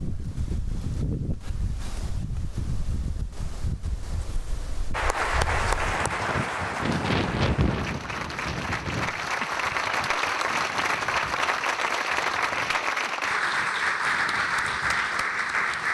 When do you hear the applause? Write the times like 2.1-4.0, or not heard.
4.9-15.9.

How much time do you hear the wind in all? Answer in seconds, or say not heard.
16 s.